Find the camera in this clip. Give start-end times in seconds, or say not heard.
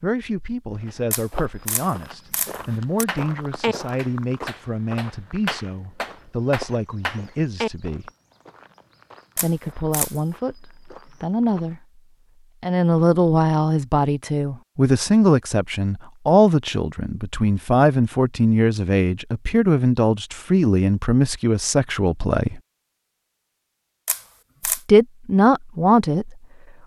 1.1-3.0, 9.3-10.2, 24.1-24.8.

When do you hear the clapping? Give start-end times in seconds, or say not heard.
3.0-7.7.